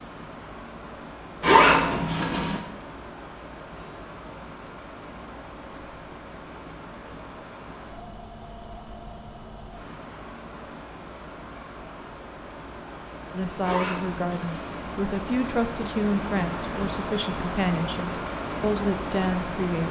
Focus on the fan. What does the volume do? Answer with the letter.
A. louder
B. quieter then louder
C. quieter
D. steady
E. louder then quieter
A.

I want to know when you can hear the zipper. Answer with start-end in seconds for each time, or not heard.
1.4-2.6, 13.6-14.8.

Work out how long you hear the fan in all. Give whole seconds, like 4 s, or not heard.
20 s.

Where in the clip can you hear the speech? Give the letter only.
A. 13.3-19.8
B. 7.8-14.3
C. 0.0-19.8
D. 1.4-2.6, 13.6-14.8
A.